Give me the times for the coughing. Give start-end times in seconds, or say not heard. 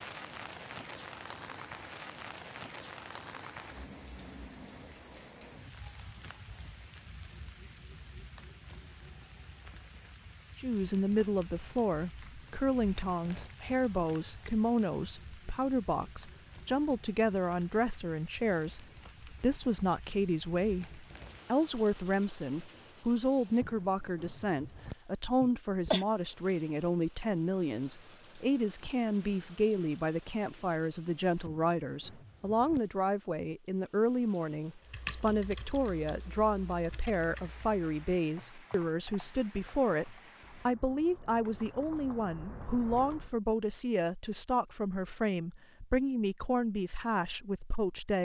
25.4-26.1.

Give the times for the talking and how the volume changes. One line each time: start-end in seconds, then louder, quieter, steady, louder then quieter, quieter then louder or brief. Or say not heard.
10.6-48.1 steady.